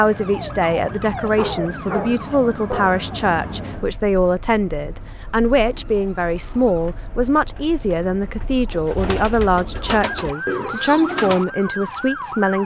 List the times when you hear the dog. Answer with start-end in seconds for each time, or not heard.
1.4-3.0.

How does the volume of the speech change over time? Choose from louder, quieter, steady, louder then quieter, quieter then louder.
steady.